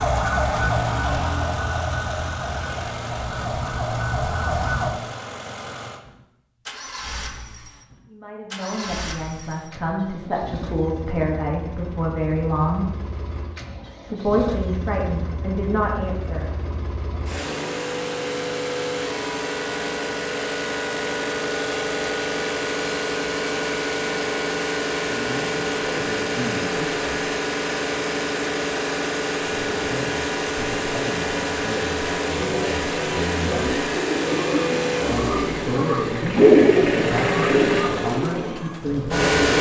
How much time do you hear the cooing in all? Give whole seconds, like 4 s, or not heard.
6 s.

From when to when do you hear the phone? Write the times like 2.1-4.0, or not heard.
not heard.